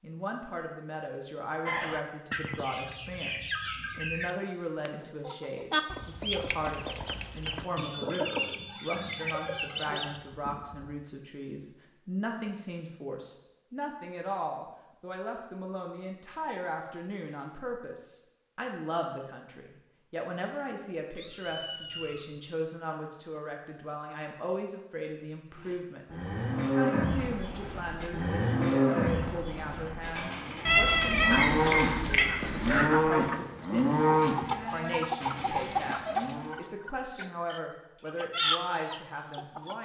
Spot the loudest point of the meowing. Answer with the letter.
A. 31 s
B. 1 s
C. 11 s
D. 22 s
A.